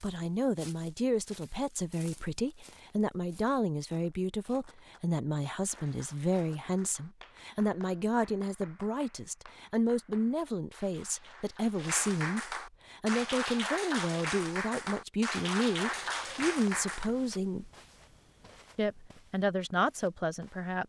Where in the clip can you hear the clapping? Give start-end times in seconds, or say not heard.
5.6-17.1.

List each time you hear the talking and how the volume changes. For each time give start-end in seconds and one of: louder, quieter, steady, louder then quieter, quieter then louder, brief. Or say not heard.
0.0-17.7 steady
18.8-20.8 brief.